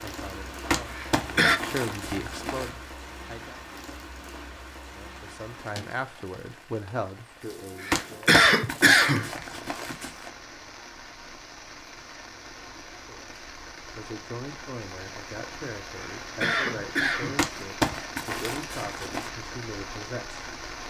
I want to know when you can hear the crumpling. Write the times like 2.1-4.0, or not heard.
0.7-2.7, 7.9-10.3, 17.4-19.3.